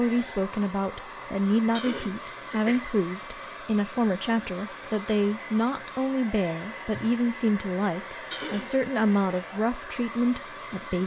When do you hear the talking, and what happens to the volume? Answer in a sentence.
The talking can be heard from 0.0 to 11.0 s, at a steady volume.